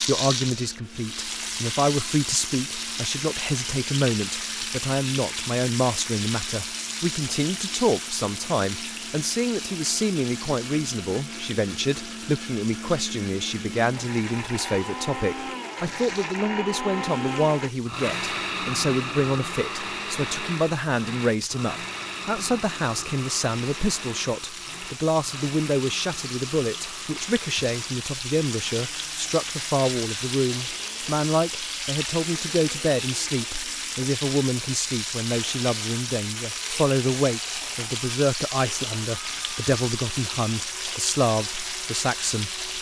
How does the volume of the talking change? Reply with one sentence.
The loudness of the talking stays about the same.